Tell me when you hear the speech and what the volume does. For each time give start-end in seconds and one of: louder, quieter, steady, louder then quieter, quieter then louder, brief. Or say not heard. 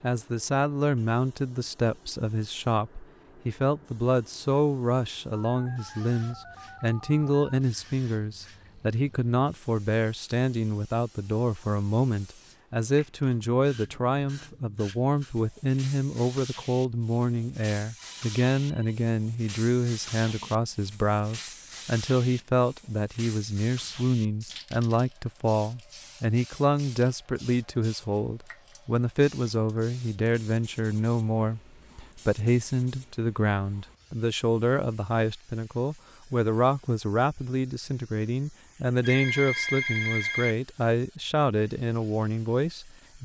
0.0-43.2 steady.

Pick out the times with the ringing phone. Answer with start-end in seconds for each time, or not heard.
5.3-7.7, 17.9-19.1, 39.0-40.5.